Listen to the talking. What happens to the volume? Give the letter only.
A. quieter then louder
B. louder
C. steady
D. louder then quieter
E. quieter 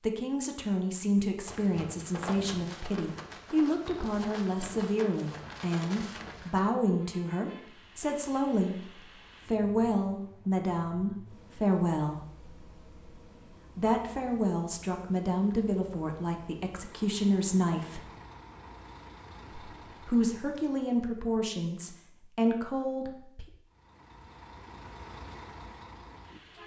C.